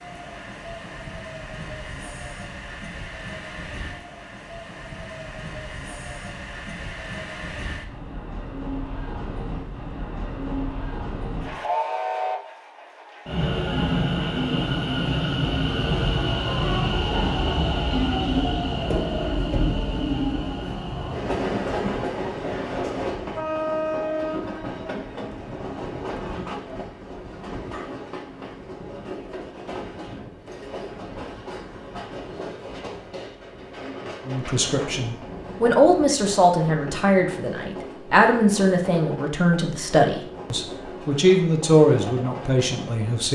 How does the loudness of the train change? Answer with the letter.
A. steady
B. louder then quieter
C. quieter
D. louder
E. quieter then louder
B.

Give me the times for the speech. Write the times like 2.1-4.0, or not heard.
34.2-43.2.